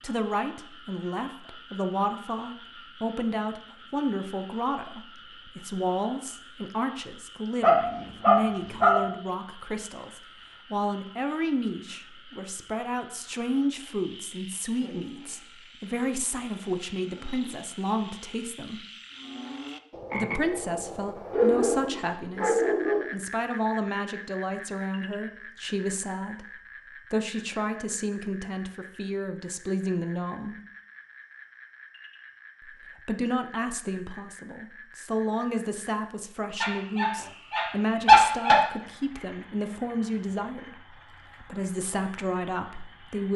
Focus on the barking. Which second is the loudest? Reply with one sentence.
The volume of the barking peaks at 38 seconds.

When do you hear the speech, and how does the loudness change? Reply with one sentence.
You can hear the speech from 0.0 to 18.8 s, at a steady volume; from 20.1 to 30.6 s, at a steady volume; and from 32.6 to 43.3 s, at a steady volume.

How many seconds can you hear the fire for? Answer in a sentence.
You can't hear the fire here.